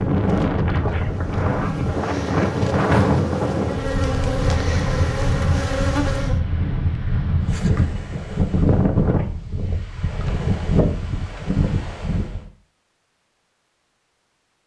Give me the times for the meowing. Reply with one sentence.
The meowing can't be heard in this clip.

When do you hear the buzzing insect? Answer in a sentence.
You can hear the buzzing insect from 0.0 to 6.4 s.